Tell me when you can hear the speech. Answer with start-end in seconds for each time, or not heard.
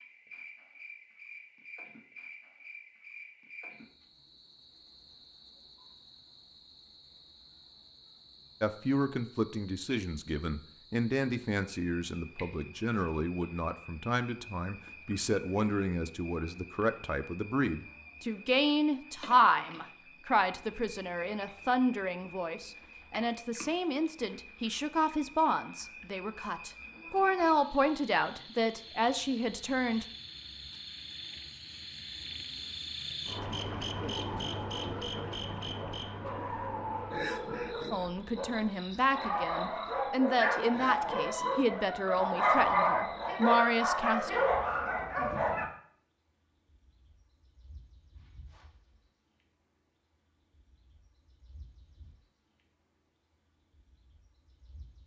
8.6-30.1, 37.9-44.3.